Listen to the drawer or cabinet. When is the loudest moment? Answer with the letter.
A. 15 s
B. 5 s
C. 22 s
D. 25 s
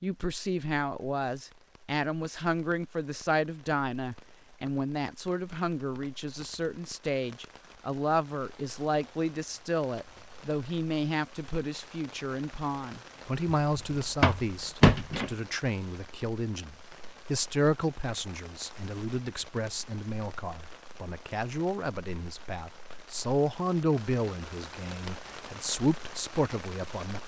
A.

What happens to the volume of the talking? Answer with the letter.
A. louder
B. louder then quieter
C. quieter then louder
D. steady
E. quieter
D.